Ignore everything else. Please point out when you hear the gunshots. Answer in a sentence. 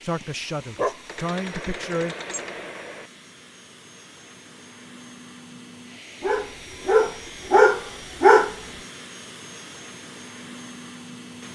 You can hear the gunshots from 1.1 to 3.1 s.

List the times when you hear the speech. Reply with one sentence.
The speech can be heard from 0.0 to 2.1 s.